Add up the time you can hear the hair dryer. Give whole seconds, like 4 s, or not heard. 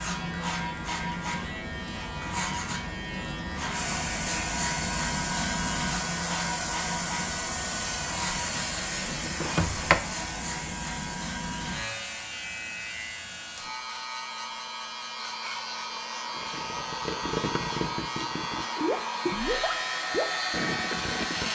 18 s.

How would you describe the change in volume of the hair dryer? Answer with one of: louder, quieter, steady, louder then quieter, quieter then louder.
quieter then louder.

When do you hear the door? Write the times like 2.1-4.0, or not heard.
9.4-10.0.